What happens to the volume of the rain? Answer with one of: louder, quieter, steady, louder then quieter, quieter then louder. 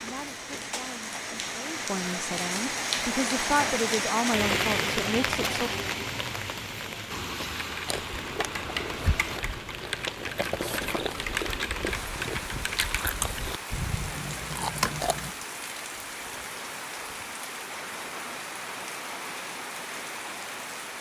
quieter.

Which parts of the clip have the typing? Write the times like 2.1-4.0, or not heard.
7.5-15.3.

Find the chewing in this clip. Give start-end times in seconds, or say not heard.
7.8-15.2.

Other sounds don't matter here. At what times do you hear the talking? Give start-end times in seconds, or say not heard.
0.0-5.7.